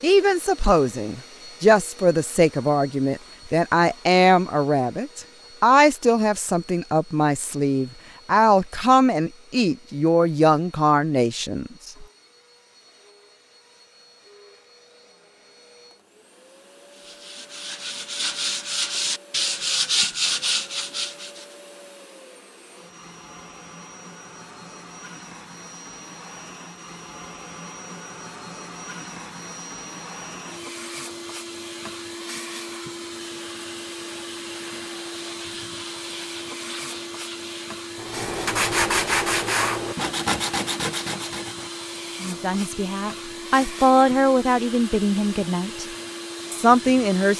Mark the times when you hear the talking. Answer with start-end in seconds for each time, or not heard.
0.0-12.1, 42.2-45.9, 46.5-47.3.